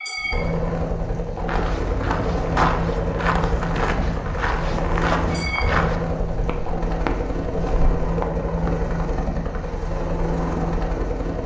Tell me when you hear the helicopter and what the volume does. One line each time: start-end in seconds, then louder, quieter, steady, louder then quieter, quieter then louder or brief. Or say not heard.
0.0-11.4 steady.